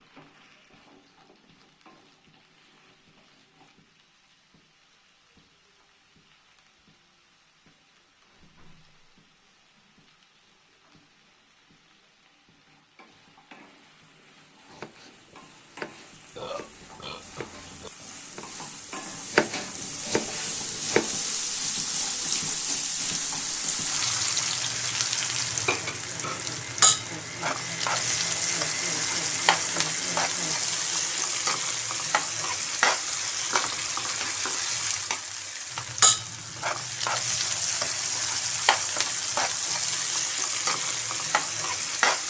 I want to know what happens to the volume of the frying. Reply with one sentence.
The loudness of the frying goes up.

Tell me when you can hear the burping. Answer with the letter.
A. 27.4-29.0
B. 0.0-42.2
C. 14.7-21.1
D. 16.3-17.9
D.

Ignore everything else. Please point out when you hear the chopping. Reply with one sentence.
The chopping can be heard from 14.7 to 21.1 s.